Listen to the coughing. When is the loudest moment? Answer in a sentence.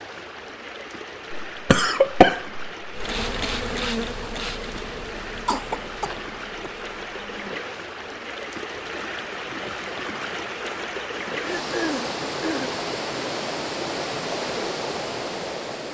The loudest moment of the coughing is at 2 seconds.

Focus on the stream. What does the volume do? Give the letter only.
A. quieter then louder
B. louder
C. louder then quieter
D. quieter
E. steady
B.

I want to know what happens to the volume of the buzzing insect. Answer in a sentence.
The volume of the buzzing insect goes down.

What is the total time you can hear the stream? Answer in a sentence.
You can hear the stream for 16 seconds altogether.